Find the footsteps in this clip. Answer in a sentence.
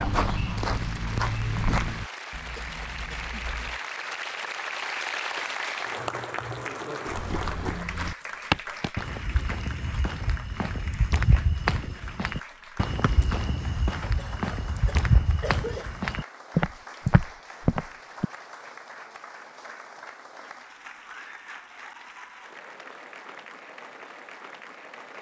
You can hear the footsteps from 0.0 to 2.1 s and from 7.0 to 18.2 s.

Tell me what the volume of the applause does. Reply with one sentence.
The volume of the applause goes down.